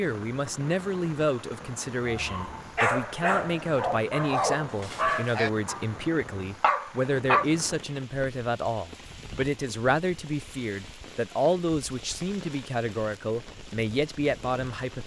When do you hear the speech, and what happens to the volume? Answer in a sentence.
The speech can be heard from 0.0 to 15.0 s, at a steady volume.